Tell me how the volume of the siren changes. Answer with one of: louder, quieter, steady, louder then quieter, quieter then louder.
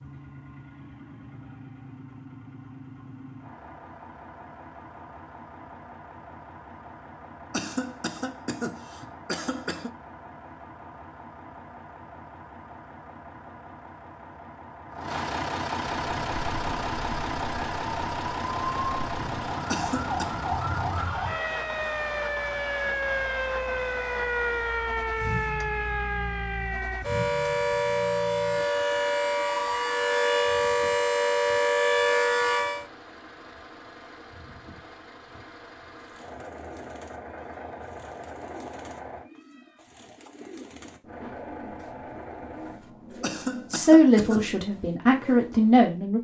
louder.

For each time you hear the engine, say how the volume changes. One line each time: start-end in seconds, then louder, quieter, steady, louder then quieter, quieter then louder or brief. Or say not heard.
0.0-39.3 louder then quieter
41.0-42.8 brief.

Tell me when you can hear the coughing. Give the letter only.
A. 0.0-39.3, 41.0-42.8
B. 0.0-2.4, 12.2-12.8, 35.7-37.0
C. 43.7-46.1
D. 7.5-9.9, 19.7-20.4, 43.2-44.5
D.